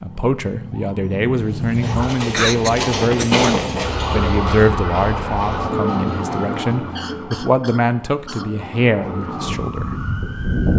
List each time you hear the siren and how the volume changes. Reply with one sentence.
The siren can be heard briefly from 0.0 to 2.1 s; and from 3.8 to 10.7 s, getting quieter then louder.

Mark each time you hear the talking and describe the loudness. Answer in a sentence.
You can hear the talking from 0.0 to 9.9 s, at a steady volume.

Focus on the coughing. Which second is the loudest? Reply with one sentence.
The loudest moment of the coughing is at 3 seconds.